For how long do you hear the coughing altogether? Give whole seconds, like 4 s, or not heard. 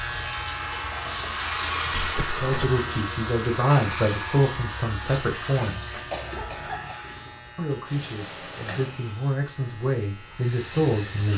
2 s.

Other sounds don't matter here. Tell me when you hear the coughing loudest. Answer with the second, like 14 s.
6 s.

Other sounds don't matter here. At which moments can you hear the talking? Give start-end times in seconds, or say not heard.
2.3-6.0, 7.5-11.3.